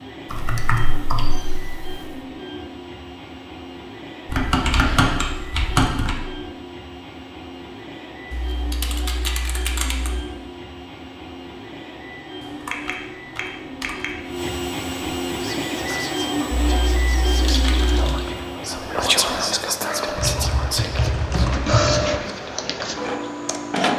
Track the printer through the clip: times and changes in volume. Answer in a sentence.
The printer can be heard from 0.0 to 23.9 s, getting louder.